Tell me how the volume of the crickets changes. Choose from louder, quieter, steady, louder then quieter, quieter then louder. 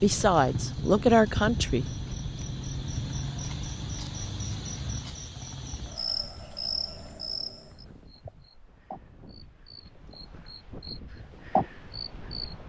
quieter then louder.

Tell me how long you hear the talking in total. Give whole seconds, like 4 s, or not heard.
2 s.